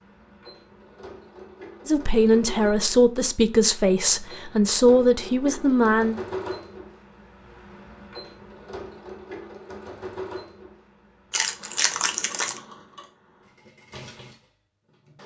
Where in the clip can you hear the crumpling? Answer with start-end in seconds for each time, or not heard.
11.3-12.6.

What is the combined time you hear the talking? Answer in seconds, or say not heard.
4 s.